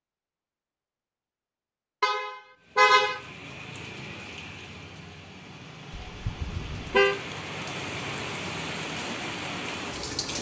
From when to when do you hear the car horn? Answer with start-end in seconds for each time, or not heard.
2.0-3.2, 6.0-7.2.